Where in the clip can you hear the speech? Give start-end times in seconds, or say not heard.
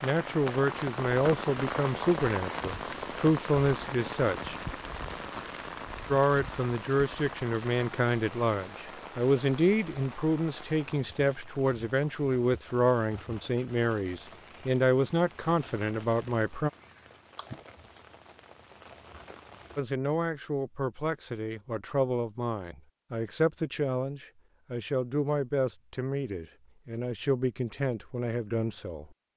0.0-4.5, 6.1-16.7, 19.8-29.1.